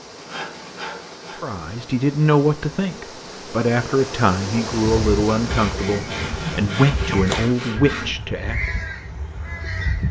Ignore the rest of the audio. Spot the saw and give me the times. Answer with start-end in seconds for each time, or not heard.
0.1-1.6, 5.3-8.2.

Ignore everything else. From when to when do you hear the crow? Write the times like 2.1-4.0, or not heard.
4.9-10.0.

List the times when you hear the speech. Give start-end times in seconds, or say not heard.
1.4-8.6.